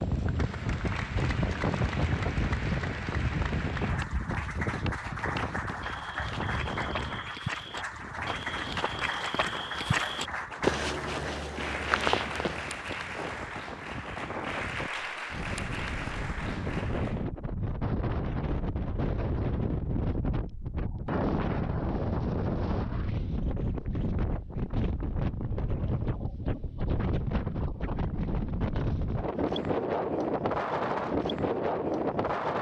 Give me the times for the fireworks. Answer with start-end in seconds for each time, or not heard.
not heard.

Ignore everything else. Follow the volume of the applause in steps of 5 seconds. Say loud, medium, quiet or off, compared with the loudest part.
loud, loud, loud, loud, off, off, off.